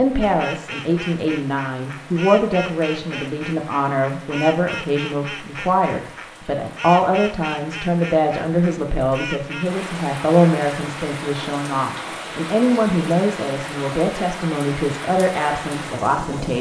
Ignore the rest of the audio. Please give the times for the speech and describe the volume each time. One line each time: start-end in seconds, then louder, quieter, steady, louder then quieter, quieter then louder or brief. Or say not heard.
0.0-16.5 steady.